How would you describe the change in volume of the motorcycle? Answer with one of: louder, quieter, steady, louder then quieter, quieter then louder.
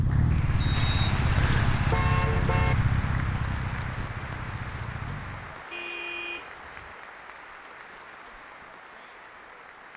quieter.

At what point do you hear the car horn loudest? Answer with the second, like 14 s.
2 s.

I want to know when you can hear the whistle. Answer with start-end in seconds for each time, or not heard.
0.6-1.7.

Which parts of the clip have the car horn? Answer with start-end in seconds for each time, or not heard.
0.7-2.8, 5.7-7.0.